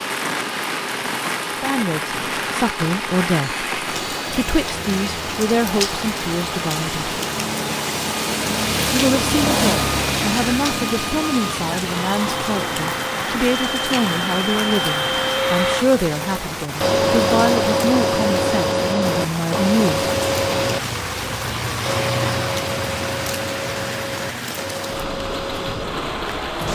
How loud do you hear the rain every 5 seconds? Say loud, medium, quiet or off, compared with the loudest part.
loud, loud, loud, medium, loud, medium.